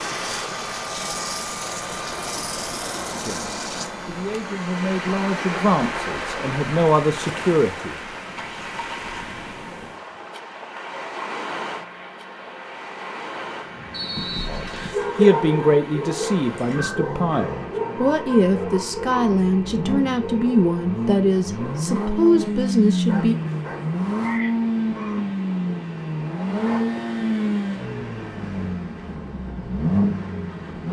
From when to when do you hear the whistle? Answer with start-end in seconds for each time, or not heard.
13.9-14.9.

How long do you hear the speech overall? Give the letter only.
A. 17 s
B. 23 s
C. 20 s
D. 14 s
D.